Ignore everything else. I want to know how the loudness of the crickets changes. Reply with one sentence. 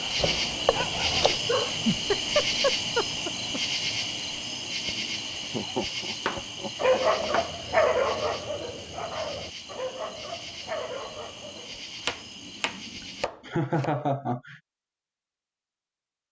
The volume of the crickets goes down.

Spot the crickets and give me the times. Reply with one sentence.
You can hear the crickets from 0.0 to 13.3 s.